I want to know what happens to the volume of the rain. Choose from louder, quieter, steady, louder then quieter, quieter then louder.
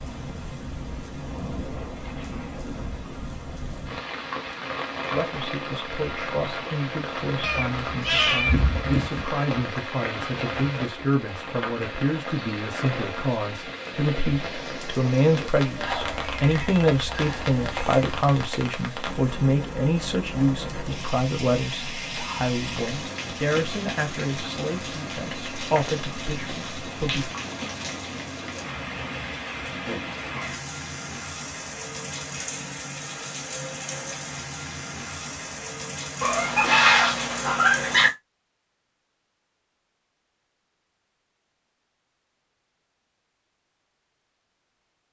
steady.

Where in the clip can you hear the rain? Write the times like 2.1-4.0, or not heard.
0.0-38.1.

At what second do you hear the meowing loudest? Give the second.
37 s.